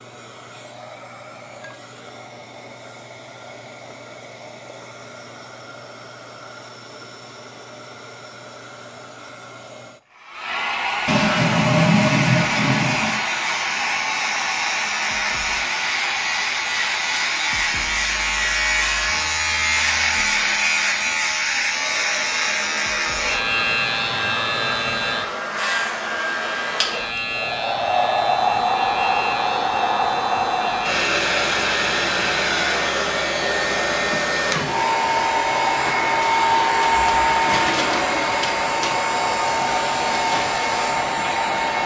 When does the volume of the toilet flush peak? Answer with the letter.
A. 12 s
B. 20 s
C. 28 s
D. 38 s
A.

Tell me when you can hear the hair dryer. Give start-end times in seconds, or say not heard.
0.0-41.8.